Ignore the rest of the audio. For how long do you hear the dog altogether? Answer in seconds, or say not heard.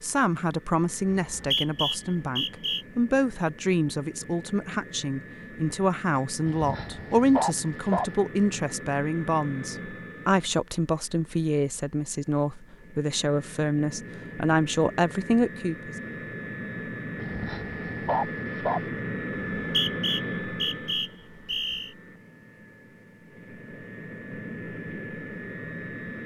3 s.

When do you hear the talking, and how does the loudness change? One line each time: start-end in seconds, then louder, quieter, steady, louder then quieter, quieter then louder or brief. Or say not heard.
0.0-15.9 steady.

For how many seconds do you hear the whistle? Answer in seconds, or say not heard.
4 s.